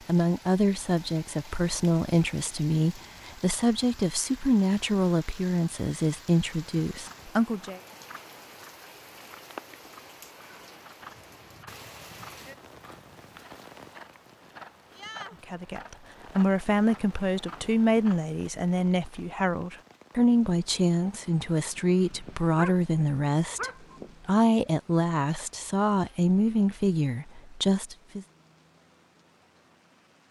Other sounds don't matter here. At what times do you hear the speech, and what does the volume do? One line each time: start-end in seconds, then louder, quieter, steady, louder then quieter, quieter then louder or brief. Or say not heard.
0.1-7.8 steady
15.5-28.2 steady.